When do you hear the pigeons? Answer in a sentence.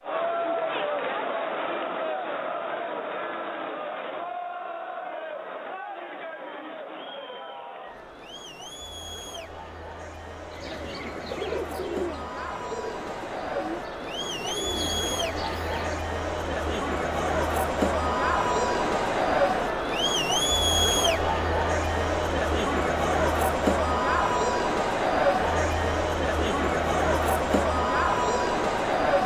You can hear the pigeons from 10.5 to 16.1 s.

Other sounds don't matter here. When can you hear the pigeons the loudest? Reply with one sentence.
The volume of the pigeons peaks at 11 seconds.